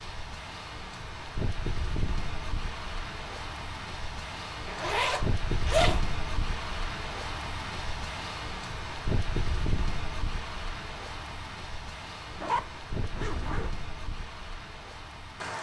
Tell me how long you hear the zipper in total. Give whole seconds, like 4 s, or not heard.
3 s.